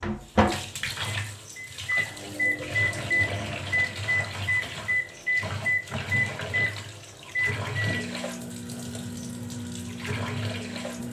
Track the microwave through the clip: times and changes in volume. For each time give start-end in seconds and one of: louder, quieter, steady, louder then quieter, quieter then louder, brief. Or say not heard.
0.0-11.0 quieter.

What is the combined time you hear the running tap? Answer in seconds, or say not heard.
11 s.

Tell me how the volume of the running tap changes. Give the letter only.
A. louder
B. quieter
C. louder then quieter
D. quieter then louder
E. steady
E.